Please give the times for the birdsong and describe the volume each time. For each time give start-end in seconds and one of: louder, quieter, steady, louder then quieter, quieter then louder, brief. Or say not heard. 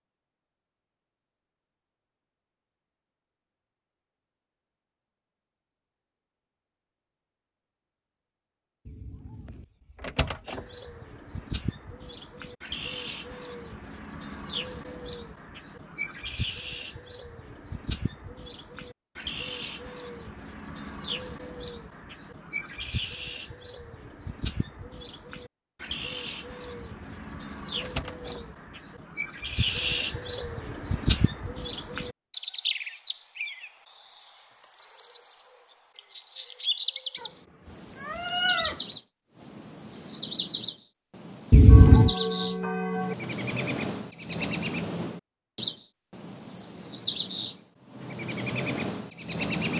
10.4-49.7 louder.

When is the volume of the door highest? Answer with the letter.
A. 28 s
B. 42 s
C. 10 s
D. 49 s
B.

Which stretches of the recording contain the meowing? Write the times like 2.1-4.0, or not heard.
37.1-38.9.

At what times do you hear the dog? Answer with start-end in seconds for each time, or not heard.
not heard.